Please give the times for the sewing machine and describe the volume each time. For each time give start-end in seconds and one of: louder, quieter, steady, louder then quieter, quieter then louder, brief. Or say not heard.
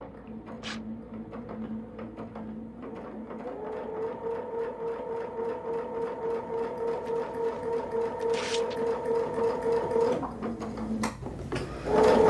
0.0-12.2 louder.